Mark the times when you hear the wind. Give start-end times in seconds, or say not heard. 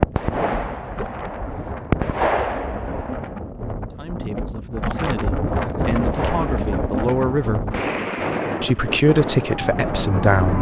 0.0-10.4.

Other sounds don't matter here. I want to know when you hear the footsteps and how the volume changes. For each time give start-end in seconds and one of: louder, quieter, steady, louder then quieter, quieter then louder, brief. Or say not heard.
not heard.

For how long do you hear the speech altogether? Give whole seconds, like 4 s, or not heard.
6 s.